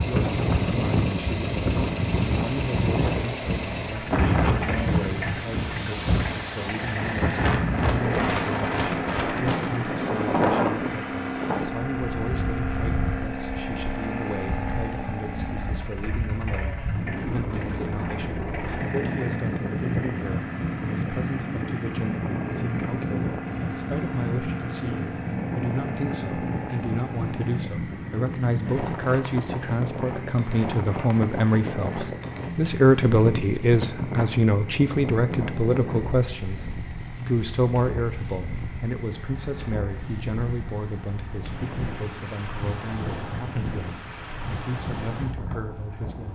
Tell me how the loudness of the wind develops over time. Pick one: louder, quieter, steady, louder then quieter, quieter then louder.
quieter.